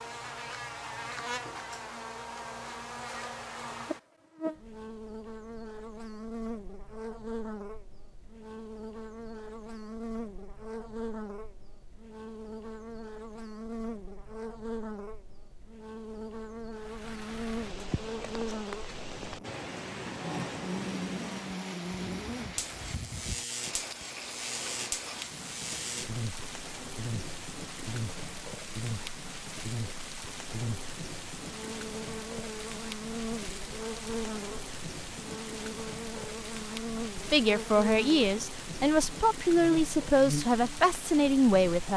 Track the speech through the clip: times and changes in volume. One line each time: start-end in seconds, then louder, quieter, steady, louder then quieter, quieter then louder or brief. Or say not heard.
37.3-41.9 steady.